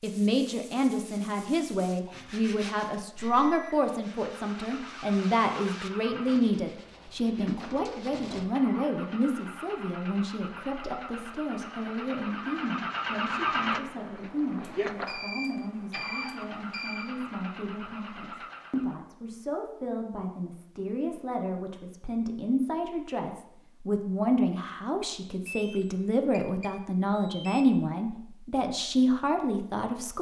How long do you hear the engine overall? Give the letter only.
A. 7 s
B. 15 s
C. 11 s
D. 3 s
B.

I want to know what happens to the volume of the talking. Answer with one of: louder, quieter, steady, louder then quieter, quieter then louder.
quieter then louder.